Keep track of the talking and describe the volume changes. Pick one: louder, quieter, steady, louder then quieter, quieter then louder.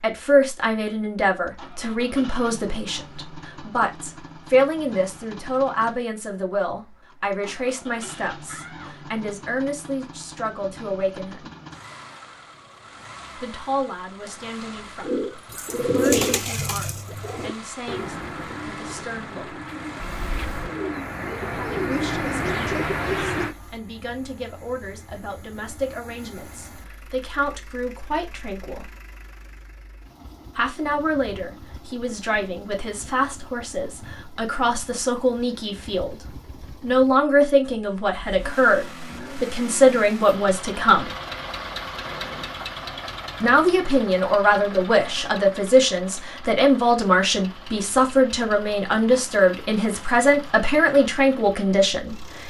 quieter then louder.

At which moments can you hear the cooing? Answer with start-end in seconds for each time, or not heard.
15.0-23.6.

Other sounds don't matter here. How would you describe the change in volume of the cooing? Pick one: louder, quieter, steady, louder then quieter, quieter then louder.
quieter then louder.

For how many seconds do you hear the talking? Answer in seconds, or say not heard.
44 s.